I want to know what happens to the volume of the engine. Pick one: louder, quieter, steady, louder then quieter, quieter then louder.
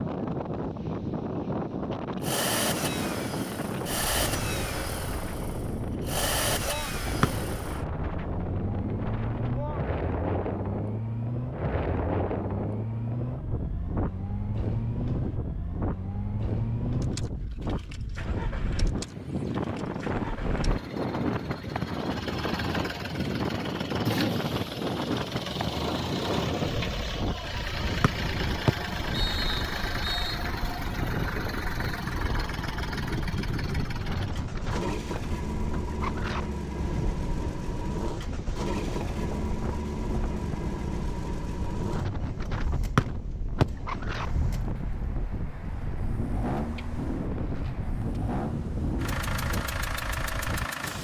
steady.